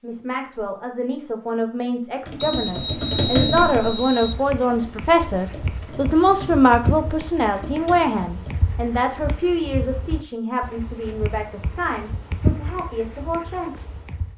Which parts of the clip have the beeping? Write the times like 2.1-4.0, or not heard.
2.4-4.3.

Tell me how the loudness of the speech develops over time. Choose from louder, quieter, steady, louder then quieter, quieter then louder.
louder then quieter.